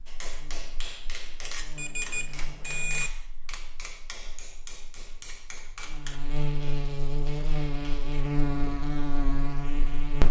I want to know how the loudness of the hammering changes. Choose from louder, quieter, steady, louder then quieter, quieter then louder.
quieter.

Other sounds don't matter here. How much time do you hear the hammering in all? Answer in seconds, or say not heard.
8 s.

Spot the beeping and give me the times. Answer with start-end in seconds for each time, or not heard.
1.8-3.1.